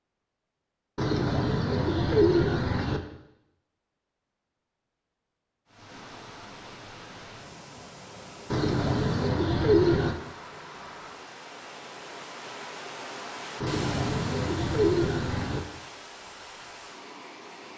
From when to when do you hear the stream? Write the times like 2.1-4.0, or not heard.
5.7-17.7.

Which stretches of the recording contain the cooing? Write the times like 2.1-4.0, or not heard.
0.9-3.0, 8.5-10.2, 13.6-15.6.